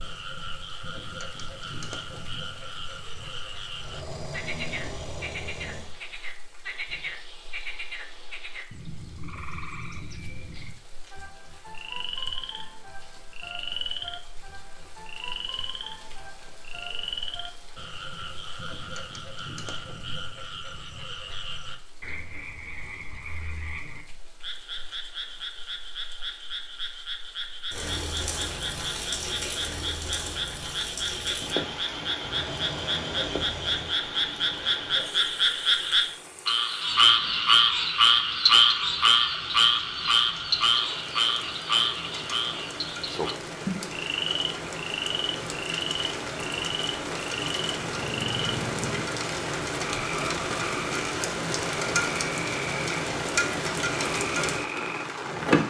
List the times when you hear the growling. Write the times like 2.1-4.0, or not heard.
3.8-6.0, 32.2-34.0, 47.8-49.1.